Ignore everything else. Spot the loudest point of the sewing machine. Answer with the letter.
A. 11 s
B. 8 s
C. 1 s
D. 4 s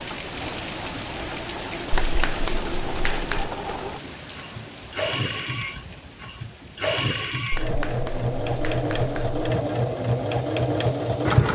A.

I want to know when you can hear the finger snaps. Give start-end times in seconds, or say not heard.
1.9-3.5, 7.5-9.6.